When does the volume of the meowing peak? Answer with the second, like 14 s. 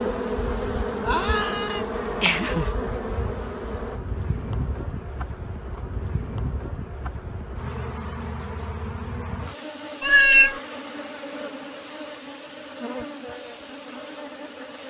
10 s.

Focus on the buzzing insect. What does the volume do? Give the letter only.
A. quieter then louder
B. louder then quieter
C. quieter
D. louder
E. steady
C.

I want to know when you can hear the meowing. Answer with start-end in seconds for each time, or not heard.
1.1-2.7, 10.0-10.6.